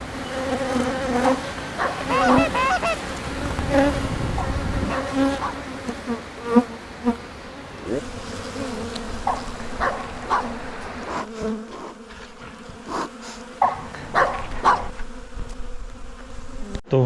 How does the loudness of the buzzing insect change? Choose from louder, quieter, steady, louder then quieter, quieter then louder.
quieter.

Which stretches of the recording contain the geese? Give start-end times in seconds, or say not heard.
2.0-5.0.